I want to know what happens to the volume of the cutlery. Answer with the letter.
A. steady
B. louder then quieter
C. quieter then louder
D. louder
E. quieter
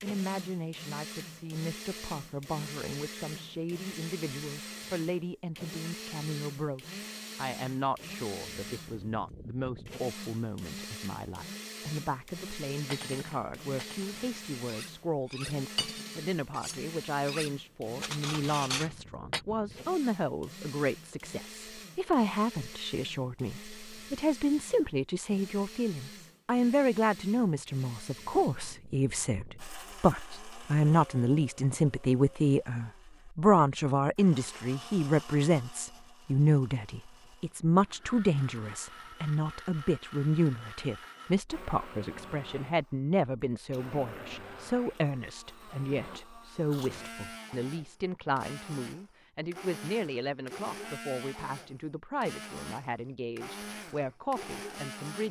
D.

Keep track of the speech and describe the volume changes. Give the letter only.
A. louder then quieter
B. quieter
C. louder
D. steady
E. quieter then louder
A.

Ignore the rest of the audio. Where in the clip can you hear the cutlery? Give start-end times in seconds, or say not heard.
12.9-19.4.